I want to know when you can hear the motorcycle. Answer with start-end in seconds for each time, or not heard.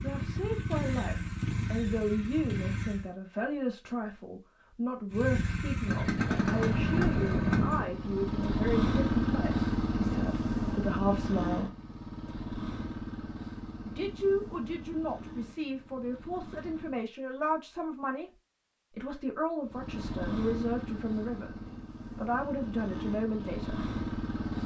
0.0-3.1, 5.1-17.1, 19.6-24.6.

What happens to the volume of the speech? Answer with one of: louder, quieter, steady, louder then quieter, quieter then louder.
steady.